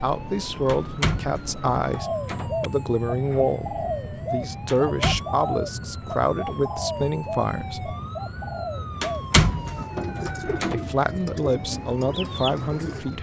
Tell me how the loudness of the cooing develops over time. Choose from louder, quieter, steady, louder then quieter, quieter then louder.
steady.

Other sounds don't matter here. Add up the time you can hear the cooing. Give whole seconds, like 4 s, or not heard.
11 s.